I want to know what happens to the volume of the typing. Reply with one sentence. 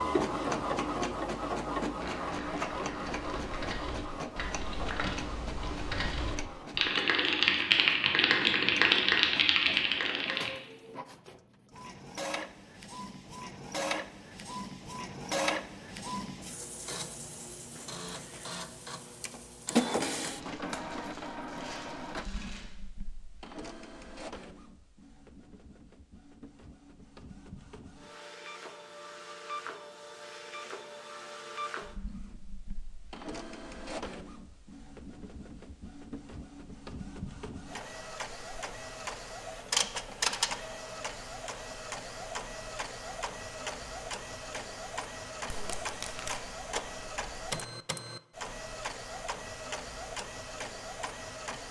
The volume of the typing goes up.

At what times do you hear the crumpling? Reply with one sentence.
The crumpling can be heard from 2.0 to 3.6 s, from 20.4 to 22.8 s and from 45.5 to 46.4 s.